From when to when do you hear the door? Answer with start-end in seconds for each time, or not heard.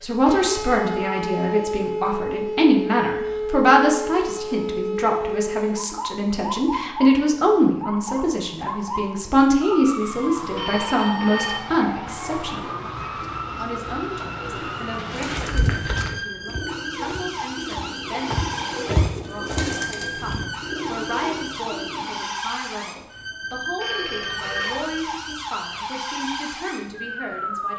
not heard.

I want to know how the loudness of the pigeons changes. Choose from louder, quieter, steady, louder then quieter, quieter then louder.
louder.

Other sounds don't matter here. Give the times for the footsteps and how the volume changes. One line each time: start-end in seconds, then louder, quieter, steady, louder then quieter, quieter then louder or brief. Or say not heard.
15.2-19.7 quieter then louder.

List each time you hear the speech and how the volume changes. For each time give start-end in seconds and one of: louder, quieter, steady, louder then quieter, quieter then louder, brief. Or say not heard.
0.0-27.7 quieter.